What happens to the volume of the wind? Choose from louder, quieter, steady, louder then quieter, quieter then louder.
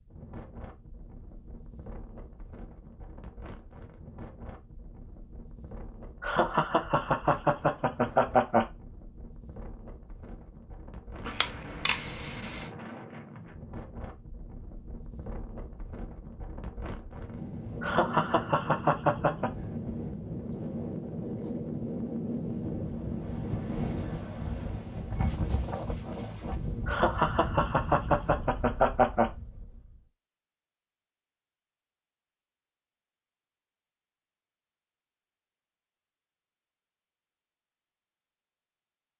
louder.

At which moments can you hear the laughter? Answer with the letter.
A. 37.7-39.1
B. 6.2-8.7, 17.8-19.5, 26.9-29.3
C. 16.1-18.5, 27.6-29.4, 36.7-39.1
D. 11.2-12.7
B.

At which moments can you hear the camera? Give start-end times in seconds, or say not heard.
11.2-12.7.